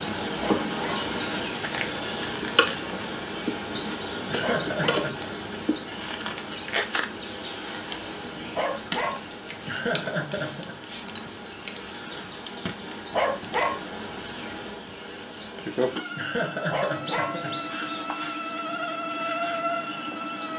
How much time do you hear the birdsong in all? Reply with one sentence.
You can't hear the birdsong here.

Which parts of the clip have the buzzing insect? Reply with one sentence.
You can hear the buzzing insect from 0.0 to 20.5 s.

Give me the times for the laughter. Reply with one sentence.
You can hear the laughter from 4.2 to 5.1 s, from 9.7 to 10.8 s and from 16.1 to 17.6 s.